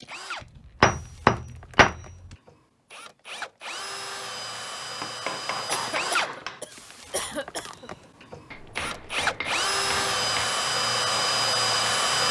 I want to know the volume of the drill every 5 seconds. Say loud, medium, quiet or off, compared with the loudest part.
quiet, medium, loud.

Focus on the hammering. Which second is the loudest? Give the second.
1 s.